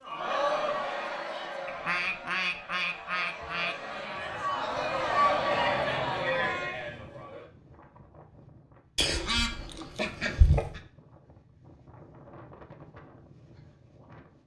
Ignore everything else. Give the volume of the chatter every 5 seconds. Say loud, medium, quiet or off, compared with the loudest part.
medium, loud, off.